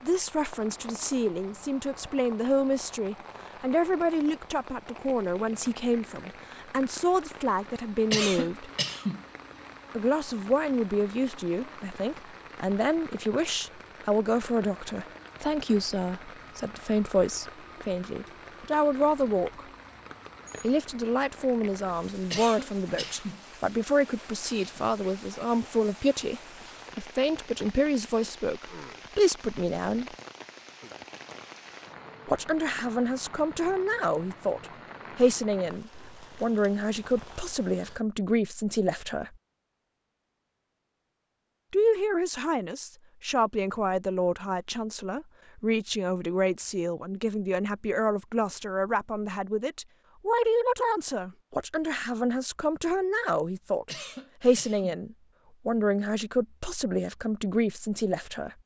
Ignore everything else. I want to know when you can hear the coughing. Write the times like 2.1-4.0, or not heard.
8.1-9.2, 22.3-23.4, 53.9-55.0.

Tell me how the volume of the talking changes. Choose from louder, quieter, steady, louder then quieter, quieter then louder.
steady.